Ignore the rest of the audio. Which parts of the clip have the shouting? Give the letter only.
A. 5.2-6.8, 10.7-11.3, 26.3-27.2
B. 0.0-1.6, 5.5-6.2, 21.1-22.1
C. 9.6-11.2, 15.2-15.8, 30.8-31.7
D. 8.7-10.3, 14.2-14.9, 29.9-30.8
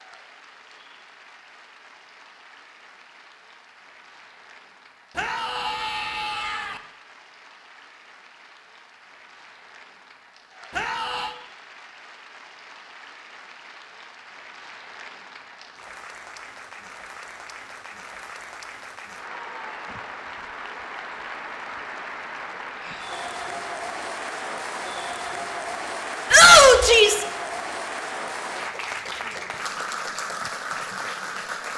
A.